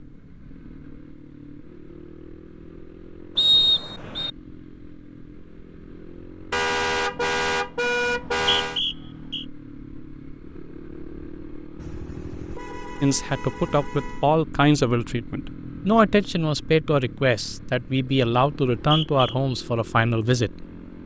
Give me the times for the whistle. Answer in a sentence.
The whistle can be heard from 3.4 to 4.3 s, from 8.1 to 9.4 s and from 18.7 to 19.4 s.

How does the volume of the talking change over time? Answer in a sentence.
The volume of the talking stays about the same.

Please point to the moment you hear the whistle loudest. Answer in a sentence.
The loudest moment of the whistle is at 4 seconds.